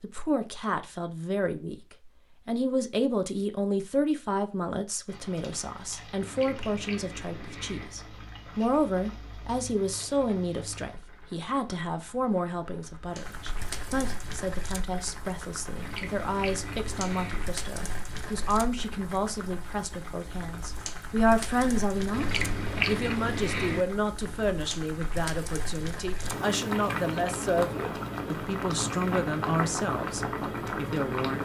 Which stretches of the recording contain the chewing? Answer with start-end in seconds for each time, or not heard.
6.2-7.9, 15.8-17.4, 22.1-23.9.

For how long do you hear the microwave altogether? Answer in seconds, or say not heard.
not heard.